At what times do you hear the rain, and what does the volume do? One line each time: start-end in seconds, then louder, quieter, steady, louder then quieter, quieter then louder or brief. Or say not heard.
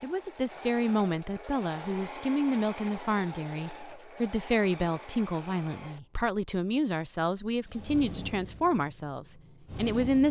not heard.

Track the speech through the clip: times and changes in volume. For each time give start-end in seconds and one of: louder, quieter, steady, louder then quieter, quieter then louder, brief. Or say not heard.
0.0-10.2 steady.